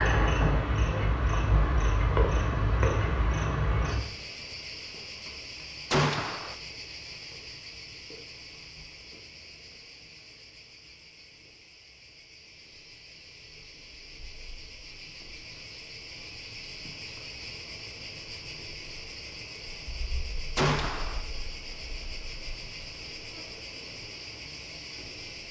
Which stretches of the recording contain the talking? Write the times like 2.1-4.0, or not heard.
not heard.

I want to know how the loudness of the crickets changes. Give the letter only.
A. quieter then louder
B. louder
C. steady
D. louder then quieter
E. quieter
A.